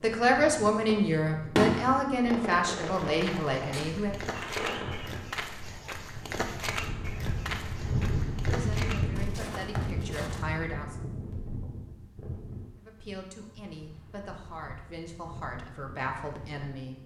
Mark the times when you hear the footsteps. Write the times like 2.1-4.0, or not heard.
2.8-10.4.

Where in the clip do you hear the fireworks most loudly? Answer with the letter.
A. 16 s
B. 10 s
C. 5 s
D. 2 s
D.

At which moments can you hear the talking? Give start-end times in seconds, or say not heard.
0.0-4.2, 8.4-10.9, 12.8-17.0.